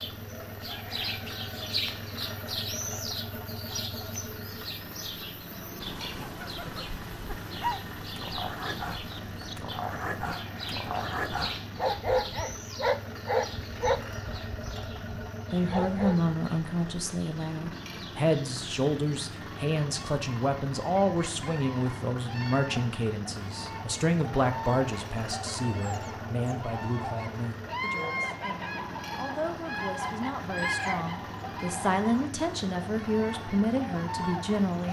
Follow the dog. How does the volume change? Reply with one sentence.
The loudness of the dog goes up, then down.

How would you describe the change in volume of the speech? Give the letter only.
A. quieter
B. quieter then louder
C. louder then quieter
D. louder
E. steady
B.